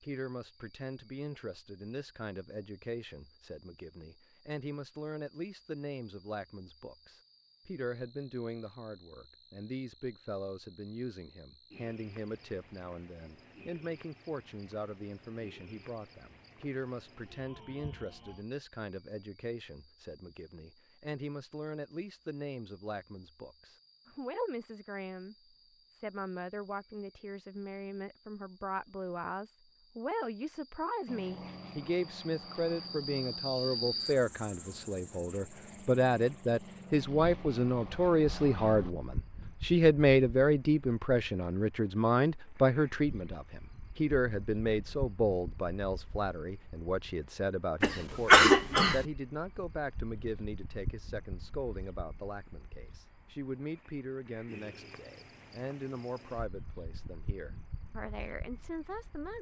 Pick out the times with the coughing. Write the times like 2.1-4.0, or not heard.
47.8-49.0.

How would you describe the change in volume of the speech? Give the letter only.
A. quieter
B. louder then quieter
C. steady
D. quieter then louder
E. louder
B.